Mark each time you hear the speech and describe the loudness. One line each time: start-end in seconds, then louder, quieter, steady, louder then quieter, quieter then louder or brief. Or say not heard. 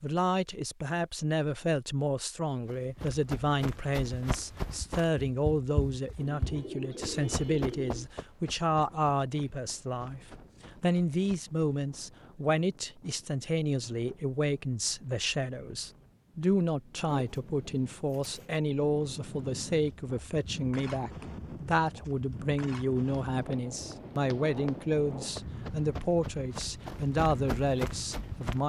0.0-28.6 steady.